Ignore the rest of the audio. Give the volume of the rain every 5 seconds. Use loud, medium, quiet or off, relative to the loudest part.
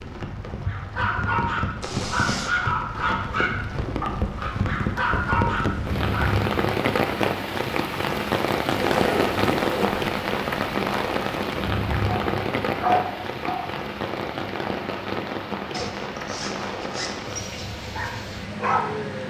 medium, loud, loud, medium.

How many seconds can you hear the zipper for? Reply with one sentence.
You can hear the zipper for 4 seconds altogether.